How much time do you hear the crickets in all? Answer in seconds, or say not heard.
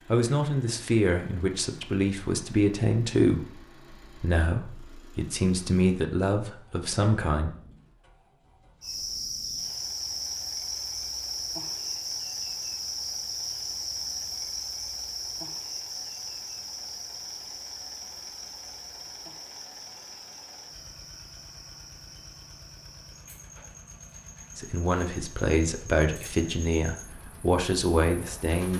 20 s.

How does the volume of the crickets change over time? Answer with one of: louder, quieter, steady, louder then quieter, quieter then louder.
quieter.